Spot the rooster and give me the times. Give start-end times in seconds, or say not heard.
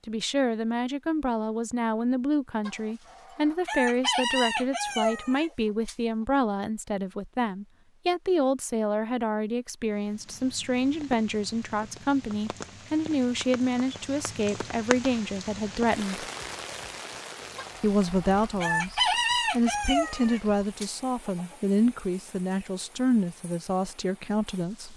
2.6-6.0, 17.6-21.6.